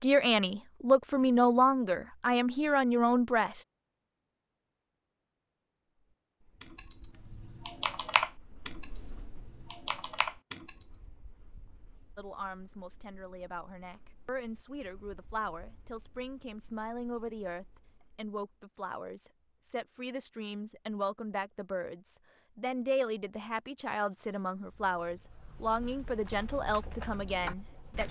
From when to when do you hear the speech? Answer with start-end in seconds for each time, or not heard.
0.0-3.6, 12.2-28.0.